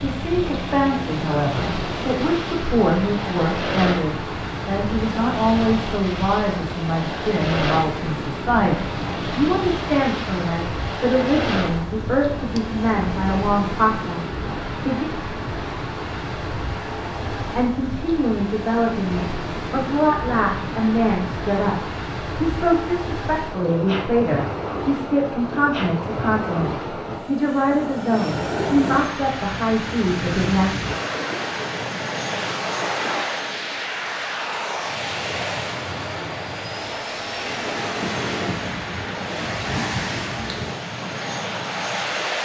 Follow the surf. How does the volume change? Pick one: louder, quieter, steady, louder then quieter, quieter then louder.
steady.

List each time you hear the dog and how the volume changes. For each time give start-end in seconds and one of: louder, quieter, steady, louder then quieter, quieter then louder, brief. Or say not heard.
not heard.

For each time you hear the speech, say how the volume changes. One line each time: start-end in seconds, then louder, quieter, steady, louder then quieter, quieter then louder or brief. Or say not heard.
0.0-15.1 steady
17.6-30.8 steady.